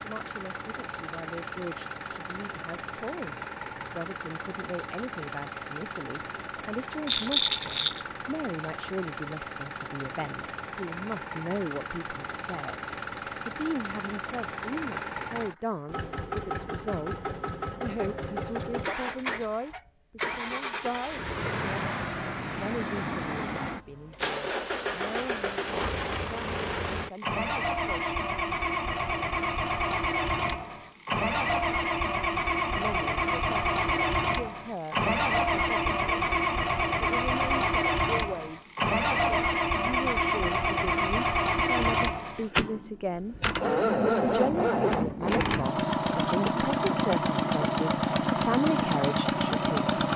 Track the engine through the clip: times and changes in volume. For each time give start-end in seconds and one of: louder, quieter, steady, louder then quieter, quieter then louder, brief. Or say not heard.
0.0-50.1 louder.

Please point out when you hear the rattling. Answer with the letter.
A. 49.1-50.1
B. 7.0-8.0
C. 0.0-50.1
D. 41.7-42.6
B.